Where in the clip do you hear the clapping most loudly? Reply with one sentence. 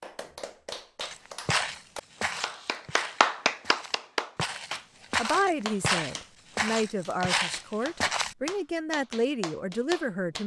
The volume of the clapping peaks at 3 seconds.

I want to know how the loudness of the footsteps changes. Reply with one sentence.
The loudness of the footsteps goes down, then up.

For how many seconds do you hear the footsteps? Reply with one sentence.
You can hear the footsteps for 7 seconds altogether.